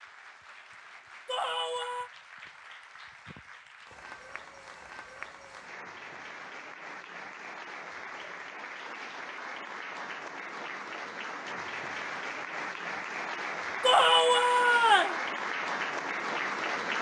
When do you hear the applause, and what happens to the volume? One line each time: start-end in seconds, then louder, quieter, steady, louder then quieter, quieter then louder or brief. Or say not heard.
0.0-16.9 louder.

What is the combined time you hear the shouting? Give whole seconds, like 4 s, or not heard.
2 s.